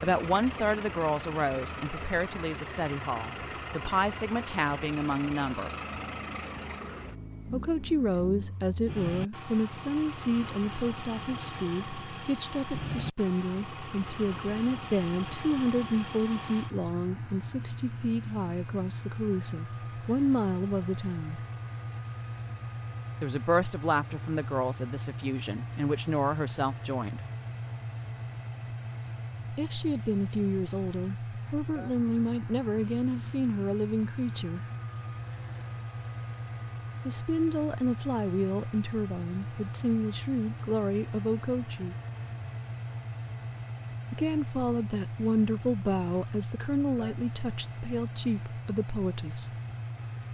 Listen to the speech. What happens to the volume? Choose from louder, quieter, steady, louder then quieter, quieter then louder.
steady.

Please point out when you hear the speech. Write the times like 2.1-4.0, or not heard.
0.0-5.7, 7.5-21.4, 23.2-27.2, 29.5-34.6, 37.0-42.0, 44.1-49.5.